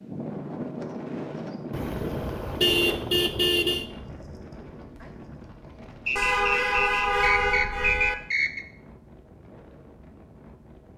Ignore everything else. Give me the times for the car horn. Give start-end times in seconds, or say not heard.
1.7-3.9, 6.2-8.2.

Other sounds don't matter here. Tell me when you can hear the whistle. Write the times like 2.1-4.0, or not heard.
6.0-8.7.